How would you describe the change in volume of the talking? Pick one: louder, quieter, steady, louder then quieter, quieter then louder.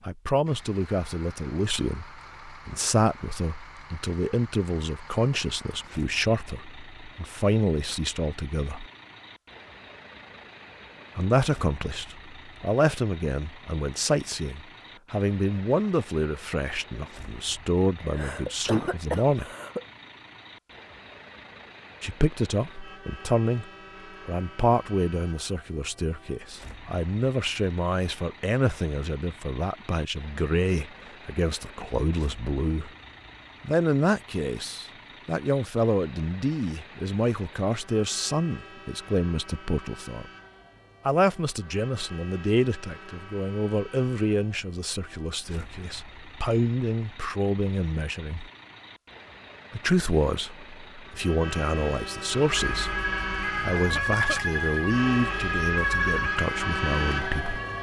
steady.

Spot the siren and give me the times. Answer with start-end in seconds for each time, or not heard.
52.4-57.7.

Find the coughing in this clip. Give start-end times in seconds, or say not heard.
18.0-19.9, 53.8-54.4.